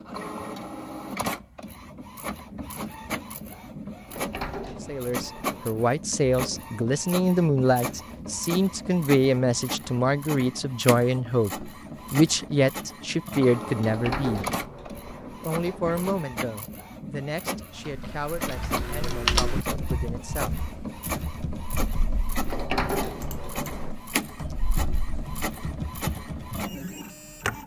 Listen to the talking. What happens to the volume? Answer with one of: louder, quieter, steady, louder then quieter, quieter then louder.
quieter.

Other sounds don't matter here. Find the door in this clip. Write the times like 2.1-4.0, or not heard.
4.0-5.8, 13.8-16.0, 22.4-23.9.